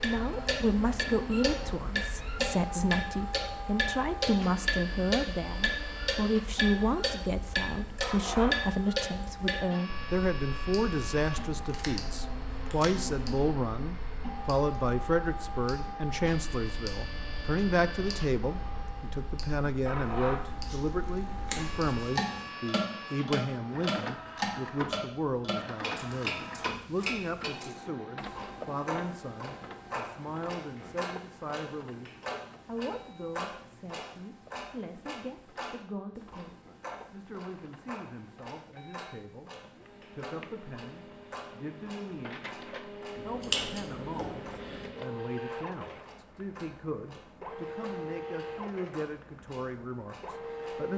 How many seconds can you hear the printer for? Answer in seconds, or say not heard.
51 s.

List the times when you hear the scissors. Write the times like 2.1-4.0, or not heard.
11.7-13.1, 20.0-22.5, 43.1-44.9.